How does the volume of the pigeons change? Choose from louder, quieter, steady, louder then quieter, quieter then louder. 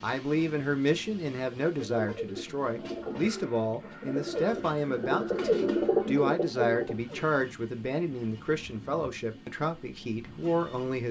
louder.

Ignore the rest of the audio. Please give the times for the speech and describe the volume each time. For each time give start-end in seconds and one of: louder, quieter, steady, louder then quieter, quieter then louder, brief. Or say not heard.
0.0-11.0 steady.